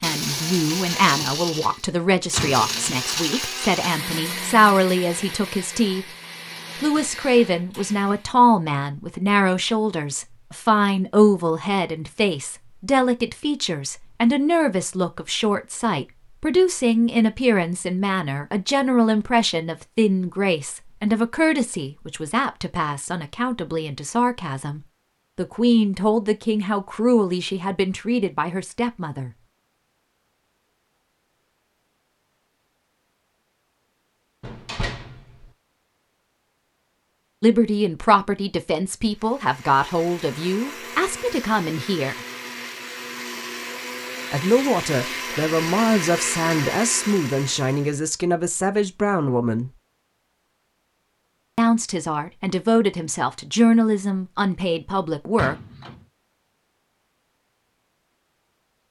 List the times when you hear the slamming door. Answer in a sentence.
The slamming door can be heard from 2.4 to 3.0 s, from 34.4 to 35.5 s and from 55.4 to 56.0 s.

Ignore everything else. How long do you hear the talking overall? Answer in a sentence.
The talking can be heard for 43 seconds in total.